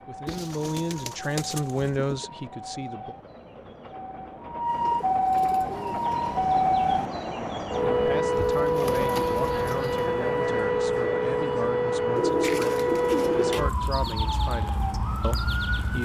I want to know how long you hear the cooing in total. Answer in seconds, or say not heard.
7 s.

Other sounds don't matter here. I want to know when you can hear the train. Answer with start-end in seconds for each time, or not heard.
0.0-8.2.